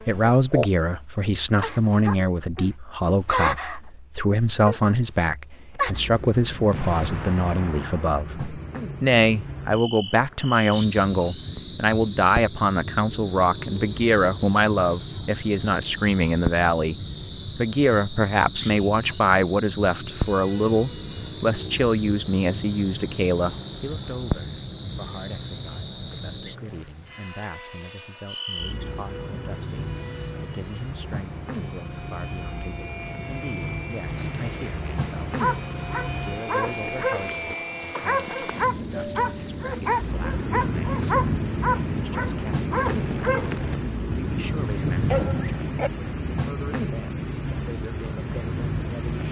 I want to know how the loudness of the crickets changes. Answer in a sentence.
The volume of the crickets goes up.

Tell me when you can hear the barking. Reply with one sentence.
The barking can be heard from 35.4 to 45.9 s.